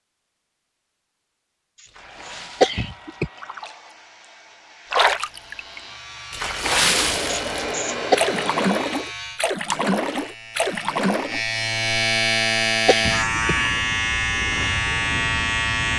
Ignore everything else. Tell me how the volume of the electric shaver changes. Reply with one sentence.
The volume of the electric shaver goes up.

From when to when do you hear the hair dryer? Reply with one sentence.
The hair dryer can be heard from 1.9 to 8.8 s.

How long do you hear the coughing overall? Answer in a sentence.
The coughing can be heard for 2 seconds in total.